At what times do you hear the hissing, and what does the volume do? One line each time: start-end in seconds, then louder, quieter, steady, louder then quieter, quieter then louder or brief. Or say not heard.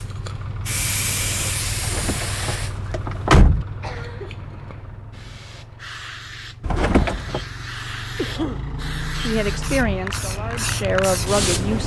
0.0-11.8 quieter then louder.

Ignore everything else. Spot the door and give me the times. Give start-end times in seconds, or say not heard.
1.8-3.6, 6.6-7.5.